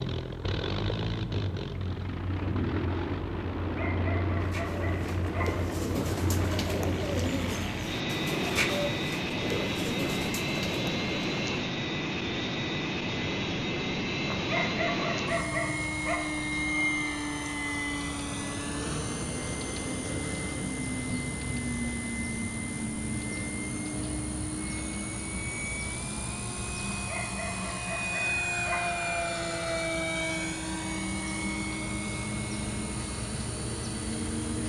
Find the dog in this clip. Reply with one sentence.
The dog can be heard from 3.6 to 5.6 s, from 14.2 to 16.2 s and from 26.9 to 29.1 s.